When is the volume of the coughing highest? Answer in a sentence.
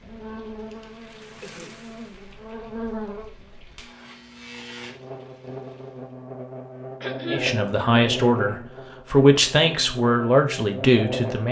The loudest moment of the coughing is at 7 seconds.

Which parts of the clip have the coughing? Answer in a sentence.
You can hear the coughing from 0.7 to 1.9 s and from 7.0 to 7.5 s.